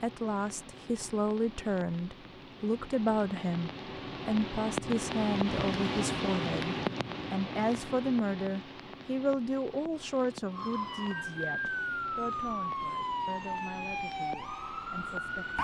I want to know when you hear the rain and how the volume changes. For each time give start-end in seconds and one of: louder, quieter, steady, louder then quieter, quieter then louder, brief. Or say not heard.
0.0-15.5 louder then quieter.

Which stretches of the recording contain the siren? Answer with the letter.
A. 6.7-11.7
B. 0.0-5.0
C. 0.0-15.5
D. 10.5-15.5
D.